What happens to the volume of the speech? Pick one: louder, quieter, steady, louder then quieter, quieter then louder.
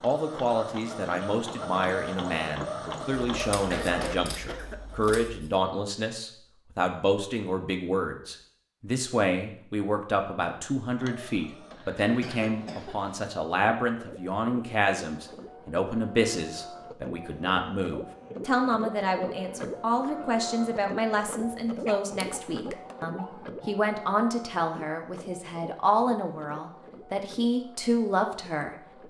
steady.